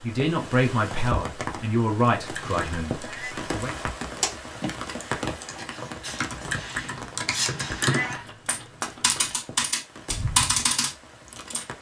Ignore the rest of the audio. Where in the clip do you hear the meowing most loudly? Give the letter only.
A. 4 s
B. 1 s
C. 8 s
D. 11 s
C.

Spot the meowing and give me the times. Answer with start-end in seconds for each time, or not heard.
3.0-3.5, 7.8-8.2.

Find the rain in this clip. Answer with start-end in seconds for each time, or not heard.
0.0-11.7.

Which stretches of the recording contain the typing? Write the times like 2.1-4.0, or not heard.
2.2-11.7.